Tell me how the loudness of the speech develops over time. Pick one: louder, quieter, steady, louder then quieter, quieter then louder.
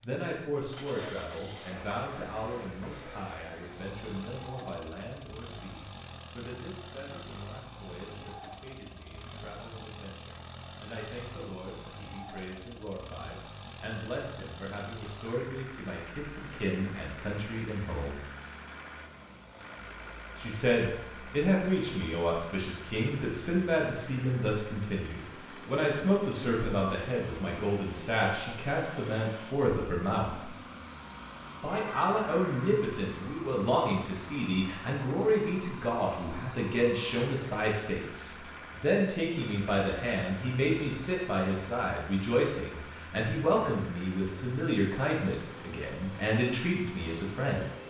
louder.